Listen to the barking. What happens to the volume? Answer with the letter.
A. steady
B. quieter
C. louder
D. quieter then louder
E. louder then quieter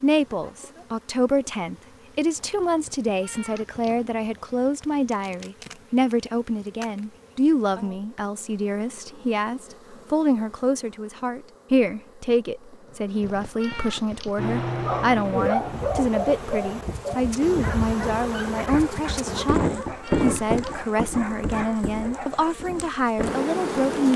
B.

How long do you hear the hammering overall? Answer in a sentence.
The hammering can't be heard in this clip.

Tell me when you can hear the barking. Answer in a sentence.
You can hear the barking from 14.3 to 22.6 s.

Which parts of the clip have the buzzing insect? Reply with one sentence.
The buzzing insect can be heard from 0.0 to 24.1 s.